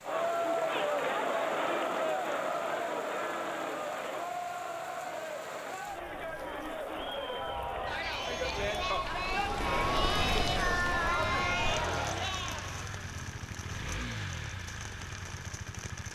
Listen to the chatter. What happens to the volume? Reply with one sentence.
The volume of the chatter goes down, then up.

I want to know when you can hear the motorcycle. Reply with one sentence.
You can hear the motorcycle from 11.2 to 16.1 s.